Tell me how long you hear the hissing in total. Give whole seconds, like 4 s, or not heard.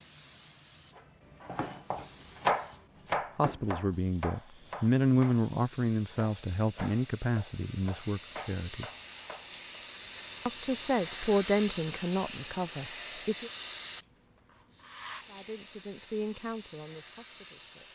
18 s.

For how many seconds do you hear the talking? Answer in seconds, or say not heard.
11 s.